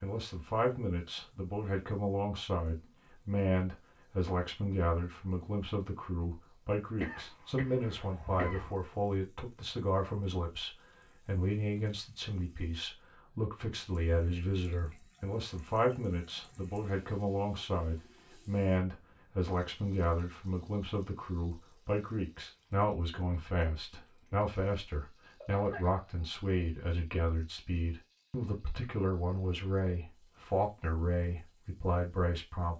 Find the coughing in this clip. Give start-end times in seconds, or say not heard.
7.0-8.8, 25.4-26.0.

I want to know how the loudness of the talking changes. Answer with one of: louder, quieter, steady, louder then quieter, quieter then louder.
steady.